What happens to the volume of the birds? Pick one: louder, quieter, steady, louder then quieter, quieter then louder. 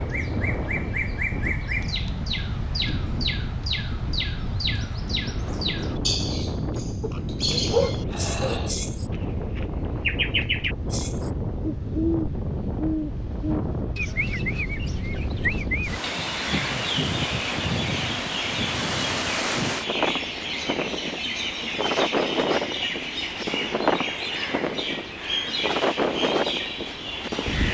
steady.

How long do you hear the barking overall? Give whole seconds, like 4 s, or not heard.
2 s.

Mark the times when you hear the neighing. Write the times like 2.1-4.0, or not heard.
not heard.